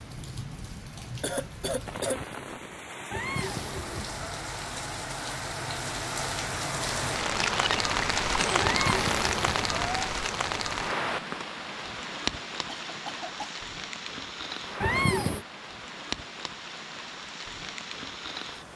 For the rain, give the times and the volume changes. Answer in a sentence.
You can hear the rain from 0.0 to 18.7 s, getting louder then quieter.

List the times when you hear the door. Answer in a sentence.
The door can't be heard in this clip.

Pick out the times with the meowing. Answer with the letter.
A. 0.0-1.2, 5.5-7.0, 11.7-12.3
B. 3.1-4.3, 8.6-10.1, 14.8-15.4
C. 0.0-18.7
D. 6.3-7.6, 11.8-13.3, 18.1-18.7
B.